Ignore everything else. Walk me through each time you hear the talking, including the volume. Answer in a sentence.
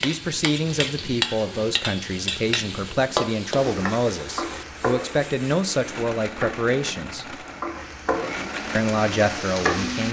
You can hear the talking from 0.0 to 7.5 s, at a steady volume; and briefly from 8.8 to 10.0 s.